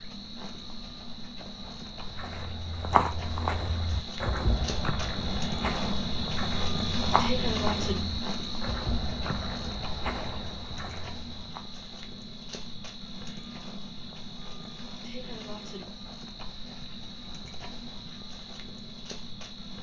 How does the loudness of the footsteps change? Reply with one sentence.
The volume of the footsteps goes down.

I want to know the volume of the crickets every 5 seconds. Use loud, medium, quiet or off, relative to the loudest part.
medium, loud, medium, medium.